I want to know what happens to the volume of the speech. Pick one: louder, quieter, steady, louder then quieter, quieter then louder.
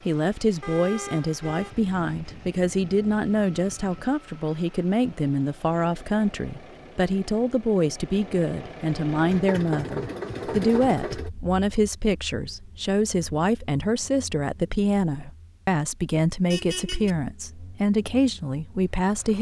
steady.